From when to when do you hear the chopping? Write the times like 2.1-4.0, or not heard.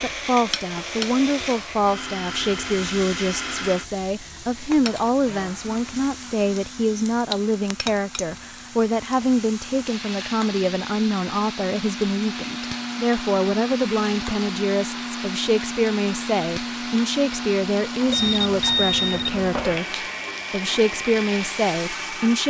not heard.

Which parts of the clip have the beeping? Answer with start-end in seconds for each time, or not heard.
18.1-19.8.